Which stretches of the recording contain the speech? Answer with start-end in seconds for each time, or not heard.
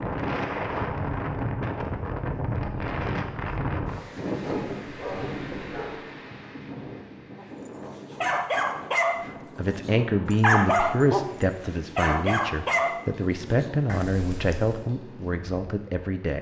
9.2-16.3.